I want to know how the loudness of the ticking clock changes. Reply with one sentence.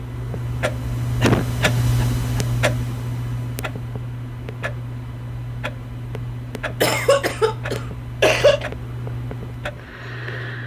The loudness of the ticking clock goes down.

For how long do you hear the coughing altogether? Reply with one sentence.
You can hear the coughing for 3 seconds altogether.